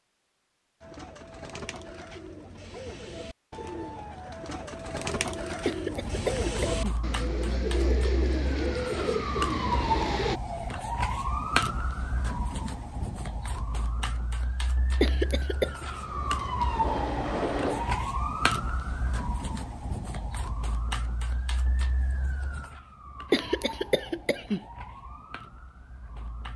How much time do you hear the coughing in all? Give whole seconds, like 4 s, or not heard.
3 s.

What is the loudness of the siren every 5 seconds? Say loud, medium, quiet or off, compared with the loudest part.
off, loud, loud, loud, medium, quiet.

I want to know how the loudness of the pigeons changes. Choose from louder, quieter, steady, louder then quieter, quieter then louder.
louder.